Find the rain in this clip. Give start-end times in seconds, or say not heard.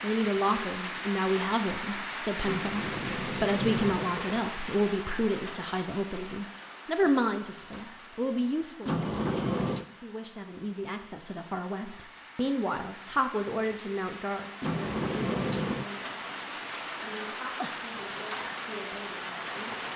0.0-19.9.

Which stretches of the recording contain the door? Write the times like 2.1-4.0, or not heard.
2.4-4.5, 8.8-9.8, 14.6-15.8.